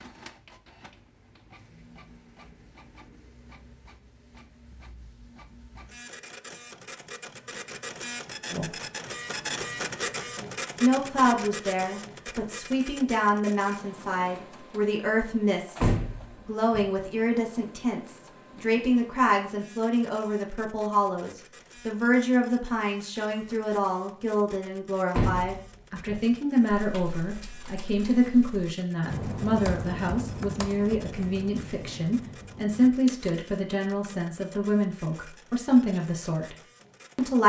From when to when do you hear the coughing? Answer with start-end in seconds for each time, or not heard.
not heard.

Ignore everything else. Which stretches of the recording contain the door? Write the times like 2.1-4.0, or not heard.
15.8-16.9, 25.1-26.2.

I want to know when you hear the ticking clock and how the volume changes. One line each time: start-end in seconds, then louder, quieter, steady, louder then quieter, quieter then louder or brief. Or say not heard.
not heard.